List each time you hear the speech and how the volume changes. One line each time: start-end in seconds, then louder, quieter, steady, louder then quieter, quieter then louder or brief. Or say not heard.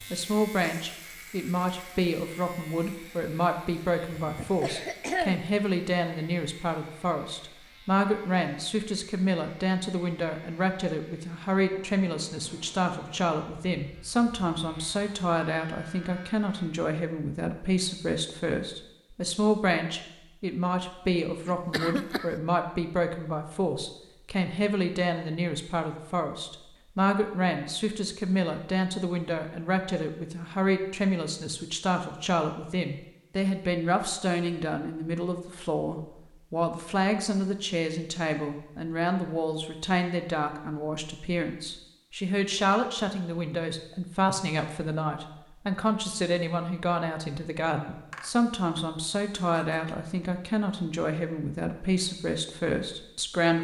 0.0-53.5 steady.